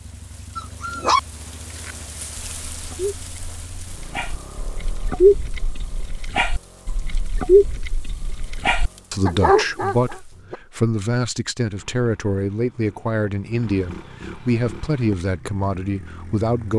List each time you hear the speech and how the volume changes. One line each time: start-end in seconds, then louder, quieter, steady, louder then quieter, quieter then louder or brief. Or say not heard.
9.1-16.7 steady.